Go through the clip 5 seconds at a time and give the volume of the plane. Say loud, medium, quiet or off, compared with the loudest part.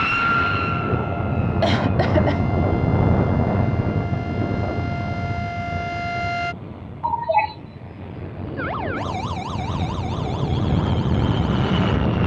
loud, medium, loud.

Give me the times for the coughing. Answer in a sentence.
You can hear the coughing from 1.6 to 2.4 s and from 7.0 to 7.5 s.